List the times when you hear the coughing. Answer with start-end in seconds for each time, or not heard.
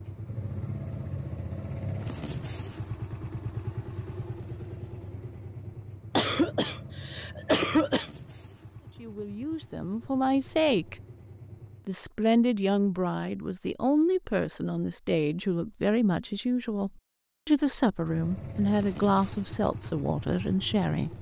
6.2-8.1.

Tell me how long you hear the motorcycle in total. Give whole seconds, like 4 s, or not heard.
15 s.